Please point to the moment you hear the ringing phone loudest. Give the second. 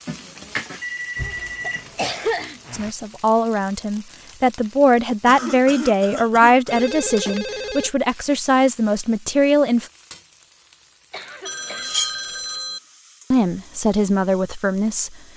12 s.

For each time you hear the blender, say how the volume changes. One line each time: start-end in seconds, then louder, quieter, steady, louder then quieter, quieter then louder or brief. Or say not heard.
not heard.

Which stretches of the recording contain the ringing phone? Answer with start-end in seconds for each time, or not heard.
0.1-1.9, 6.7-7.9, 11.4-12.8.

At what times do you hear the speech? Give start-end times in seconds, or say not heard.
2.7-9.8, 13.3-15.2.